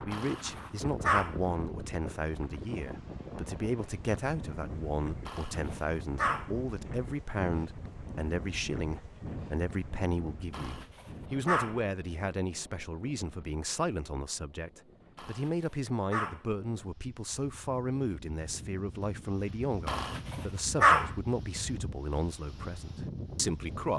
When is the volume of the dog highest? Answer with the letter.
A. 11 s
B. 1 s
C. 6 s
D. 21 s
D.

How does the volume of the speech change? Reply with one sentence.
The volume of the speech stays about the same.